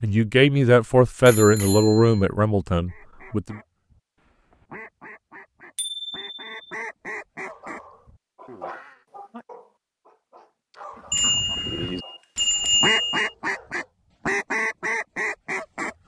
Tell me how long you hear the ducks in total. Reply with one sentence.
You can hear the ducks for 11 seconds altogether.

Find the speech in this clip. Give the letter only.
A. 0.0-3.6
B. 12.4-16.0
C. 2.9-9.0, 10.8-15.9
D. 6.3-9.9
A.